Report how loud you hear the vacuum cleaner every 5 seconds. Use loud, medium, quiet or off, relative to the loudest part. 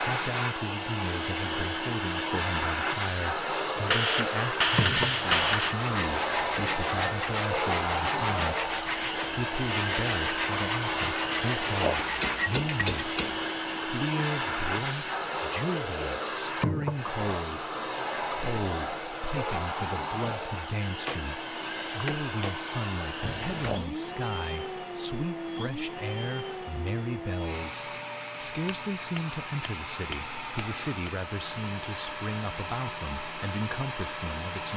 loud, loud, loud, loud, medium, medium, medium.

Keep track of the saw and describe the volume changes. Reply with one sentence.
The volume of the saw stays about the same.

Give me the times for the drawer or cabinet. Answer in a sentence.
The drawer or cabinet can be heard from 23.2 to 23.9 s.